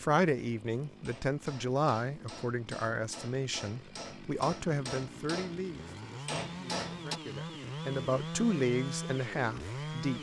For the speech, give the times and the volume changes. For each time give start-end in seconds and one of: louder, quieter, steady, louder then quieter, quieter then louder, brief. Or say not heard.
0.0-10.1 quieter then louder.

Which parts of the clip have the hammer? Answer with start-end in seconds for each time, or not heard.
0.9-7.2.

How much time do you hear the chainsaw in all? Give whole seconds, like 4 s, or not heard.
10 s.